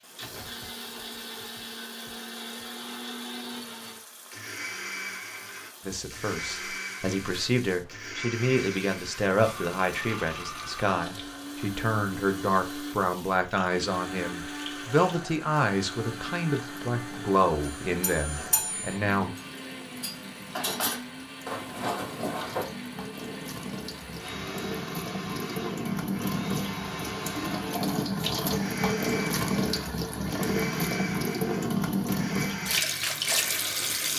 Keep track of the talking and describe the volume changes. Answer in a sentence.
The loudness of the talking stays about the same.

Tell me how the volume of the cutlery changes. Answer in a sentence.
The volume of the cutlery goes down, then up.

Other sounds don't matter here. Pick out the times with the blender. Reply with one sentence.
The blender can be heard from 0.0 to 34.1 s.